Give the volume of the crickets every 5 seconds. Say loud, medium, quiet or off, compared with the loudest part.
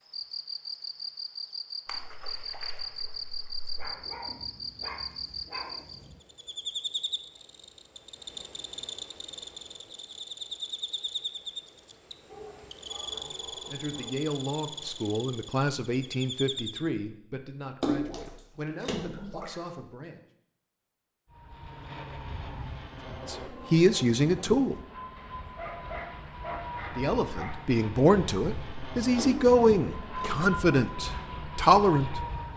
loud, loud, loud, loud, off, off, off.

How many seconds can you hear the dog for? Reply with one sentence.
You can hear the dog for 7 seconds altogether.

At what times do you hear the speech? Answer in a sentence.
The speech can be heard from 13.1 to 20.2 s, from 23.2 to 24.8 s and from 26.9 to 32.2 s.